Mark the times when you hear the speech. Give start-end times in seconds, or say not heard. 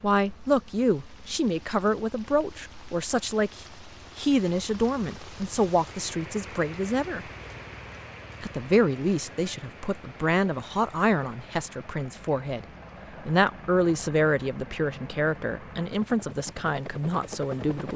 0.0-7.3, 8.4-12.7, 13.2-17.9.